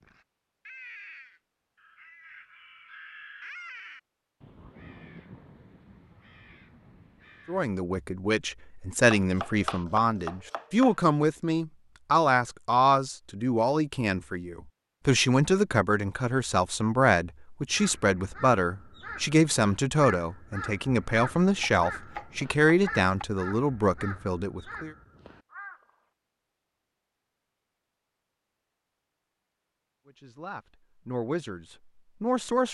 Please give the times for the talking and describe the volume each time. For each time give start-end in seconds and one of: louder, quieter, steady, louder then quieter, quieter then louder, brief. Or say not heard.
7.5-24.9 steady
30.1-32.6 brief.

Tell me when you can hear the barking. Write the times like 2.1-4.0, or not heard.
not heard.